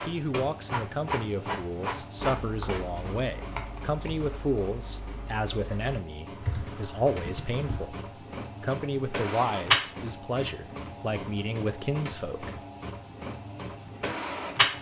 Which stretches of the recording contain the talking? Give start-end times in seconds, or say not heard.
0.1-8.0, 8.6-12.6.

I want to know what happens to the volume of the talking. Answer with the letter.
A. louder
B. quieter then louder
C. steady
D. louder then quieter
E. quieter
C.